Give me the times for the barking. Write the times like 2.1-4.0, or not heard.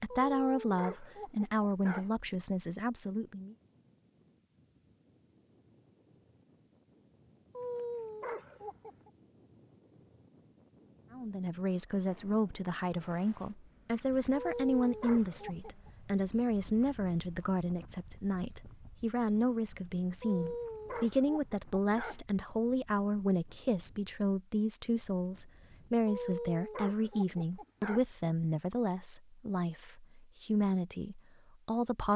0.1-2.1, 7.5-9.1, 14.3-15.9, 20.2-22.2, 26.1-28.1.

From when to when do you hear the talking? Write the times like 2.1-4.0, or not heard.
0.0-3.5, 11.1-32.1.